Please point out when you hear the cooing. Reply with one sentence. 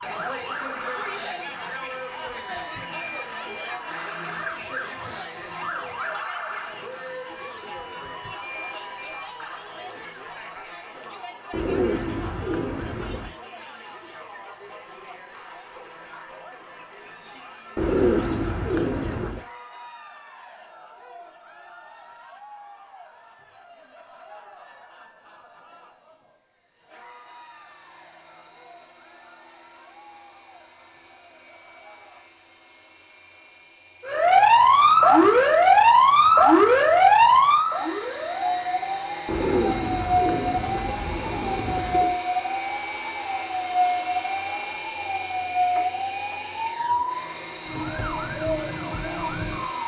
The cooing can be heard from 11.5 to 13.3 s, from 17.8 to 19.4 s and from 39.2 to 42.2 s.